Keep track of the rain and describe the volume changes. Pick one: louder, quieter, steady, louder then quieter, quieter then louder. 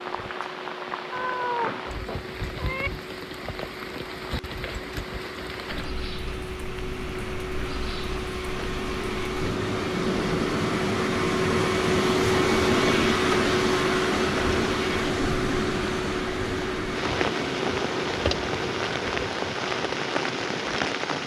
louder.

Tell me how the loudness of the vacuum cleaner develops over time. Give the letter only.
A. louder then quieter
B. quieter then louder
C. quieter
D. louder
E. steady
A.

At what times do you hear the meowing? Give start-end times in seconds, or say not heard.
1.1-2.9.